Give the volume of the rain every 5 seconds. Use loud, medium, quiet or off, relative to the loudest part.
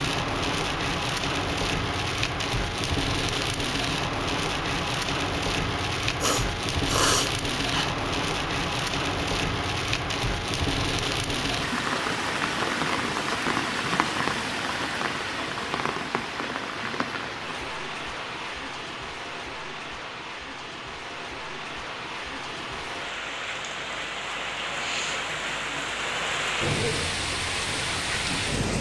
loud, loud, loud, medium, medium, loud.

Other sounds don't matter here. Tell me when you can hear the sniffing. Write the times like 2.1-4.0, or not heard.
6.2-7.9.